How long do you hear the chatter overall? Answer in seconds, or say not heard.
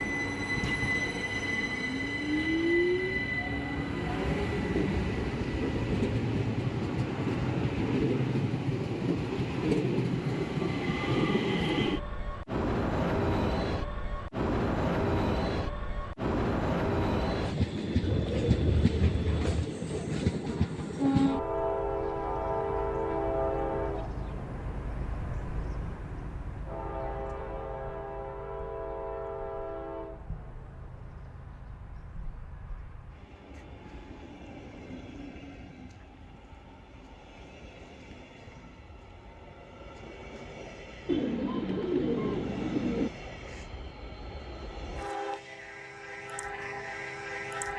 not heard.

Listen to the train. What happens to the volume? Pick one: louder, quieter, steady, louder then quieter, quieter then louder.
quieter.